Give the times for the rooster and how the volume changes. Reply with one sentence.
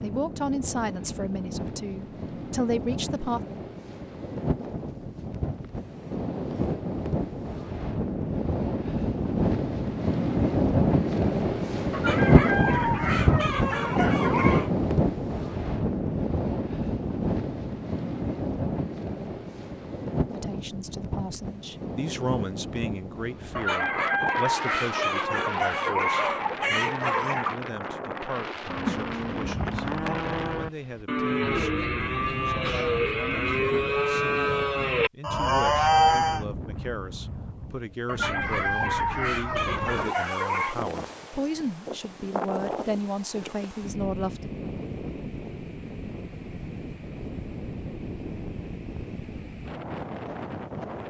You can hear the rooster briefly from 11.9 to 14.7 s; from 23.6 to 27.6 s, at a steady volume; and briefly from 38.0 to 40.8 s.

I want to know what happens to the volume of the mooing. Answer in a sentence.
The loudness of the mooing goes up.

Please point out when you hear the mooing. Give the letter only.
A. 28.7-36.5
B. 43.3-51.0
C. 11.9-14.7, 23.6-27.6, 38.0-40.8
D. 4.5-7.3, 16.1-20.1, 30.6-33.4
A.